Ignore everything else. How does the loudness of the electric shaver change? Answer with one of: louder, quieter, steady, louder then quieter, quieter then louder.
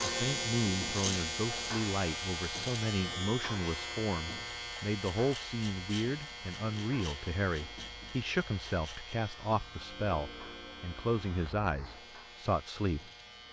quieter.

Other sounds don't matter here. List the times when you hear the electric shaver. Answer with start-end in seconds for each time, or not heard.
0.0-13.4.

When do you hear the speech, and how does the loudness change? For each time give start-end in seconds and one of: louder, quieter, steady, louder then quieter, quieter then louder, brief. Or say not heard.
0.0-13.1 steady.